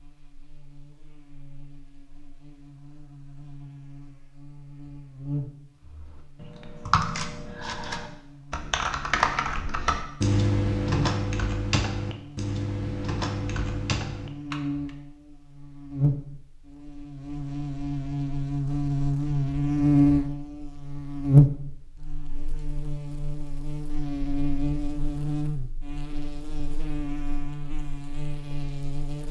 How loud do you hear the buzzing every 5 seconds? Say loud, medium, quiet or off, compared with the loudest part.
quiet, quiet, medium, loud, loud, medium.